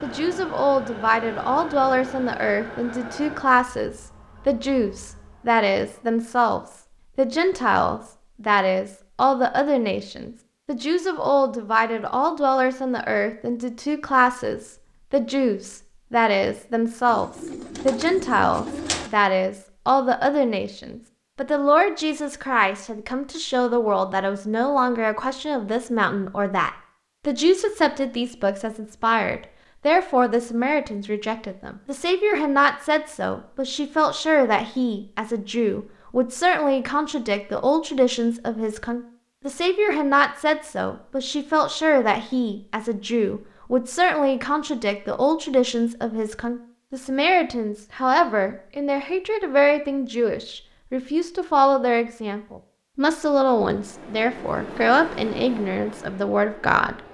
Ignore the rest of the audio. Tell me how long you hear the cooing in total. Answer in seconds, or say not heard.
2 s.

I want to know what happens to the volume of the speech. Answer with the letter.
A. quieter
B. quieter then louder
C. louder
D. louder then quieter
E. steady
E.